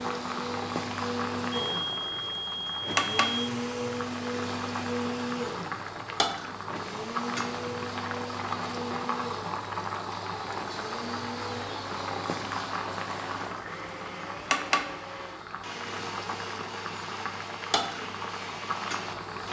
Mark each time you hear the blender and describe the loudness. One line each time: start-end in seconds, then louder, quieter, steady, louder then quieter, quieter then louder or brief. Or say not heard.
0.0-19.4 quieter.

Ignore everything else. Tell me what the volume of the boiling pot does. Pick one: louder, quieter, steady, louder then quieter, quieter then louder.
steady.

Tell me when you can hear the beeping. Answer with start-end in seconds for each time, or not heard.
1.5-3.5.